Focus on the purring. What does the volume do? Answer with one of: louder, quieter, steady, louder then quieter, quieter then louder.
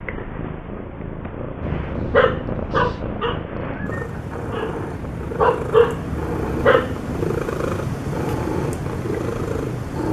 louder.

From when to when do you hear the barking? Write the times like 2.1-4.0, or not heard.
1.6-7.2.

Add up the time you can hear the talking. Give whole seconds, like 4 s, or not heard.
not heard.